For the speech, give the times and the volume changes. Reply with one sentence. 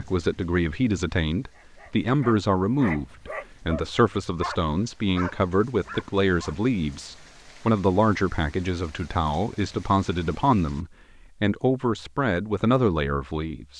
You can hear the speech from 0.0 to 13.7 s, at a steady volume.